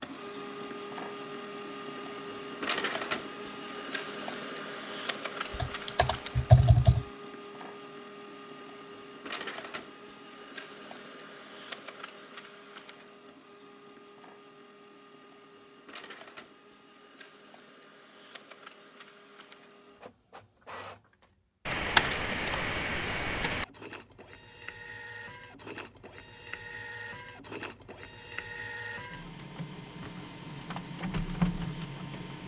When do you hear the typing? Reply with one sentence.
The typing can be heard from 5.5 to 7.0 s and from 21.6 to 23.6 s.